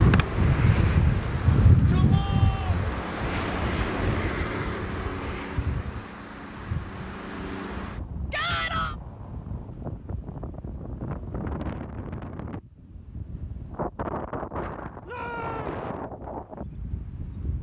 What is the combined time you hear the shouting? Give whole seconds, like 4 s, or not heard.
3 s.